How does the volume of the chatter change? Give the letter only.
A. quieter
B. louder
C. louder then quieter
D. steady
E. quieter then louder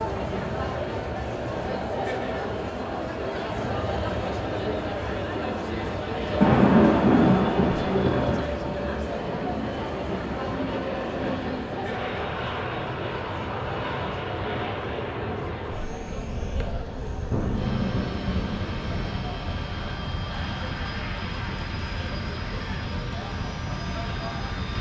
A.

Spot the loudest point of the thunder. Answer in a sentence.
The loudest moment of the thunder is at 7 seconds.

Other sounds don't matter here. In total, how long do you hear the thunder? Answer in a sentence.
The thunder can be heard for 4 seconds in total.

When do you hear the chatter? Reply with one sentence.
The chatter can be heard from 0.0 to 24.6 s.